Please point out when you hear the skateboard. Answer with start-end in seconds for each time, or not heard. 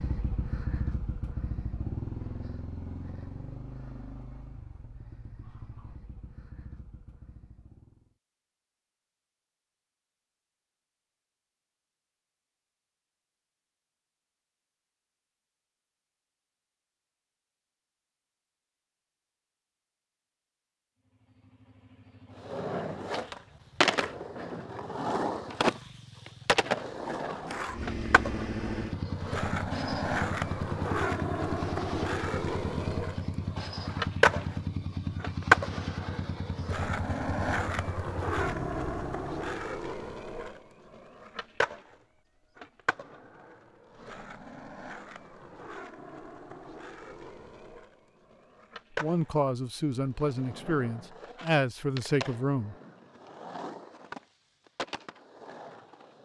22.4-56.2.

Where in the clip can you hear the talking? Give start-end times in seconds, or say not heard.
49.0-52.8.